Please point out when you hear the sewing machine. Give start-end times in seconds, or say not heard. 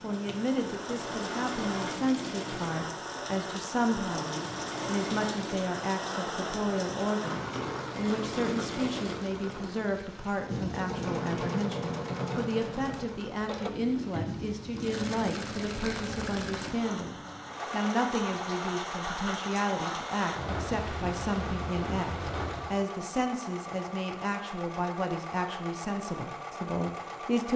0.0-27.5.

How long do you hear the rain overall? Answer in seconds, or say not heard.
23 s.